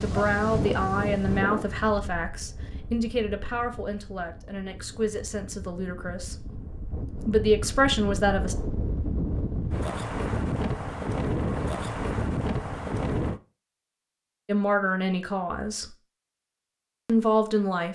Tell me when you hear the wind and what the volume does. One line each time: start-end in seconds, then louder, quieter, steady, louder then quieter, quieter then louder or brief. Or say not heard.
0.0-13.4 quieter then louder.